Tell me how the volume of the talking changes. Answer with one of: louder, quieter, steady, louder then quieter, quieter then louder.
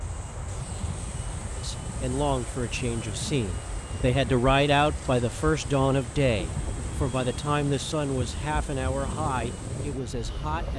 louder then quieter.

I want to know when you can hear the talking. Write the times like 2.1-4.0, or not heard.
1.6-10.7.